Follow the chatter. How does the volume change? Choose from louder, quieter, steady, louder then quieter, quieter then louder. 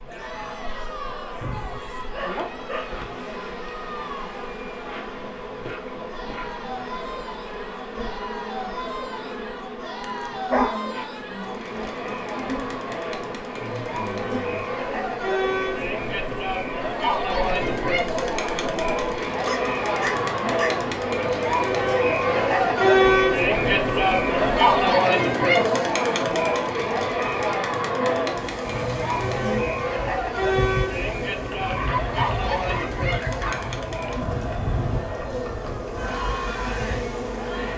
louder then quieter.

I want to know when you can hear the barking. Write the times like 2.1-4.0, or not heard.
1.4-3.1, 10.0-10.8, 19.4-20.8, 31.6-33.6.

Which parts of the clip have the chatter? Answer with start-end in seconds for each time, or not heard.
0.1-37.7.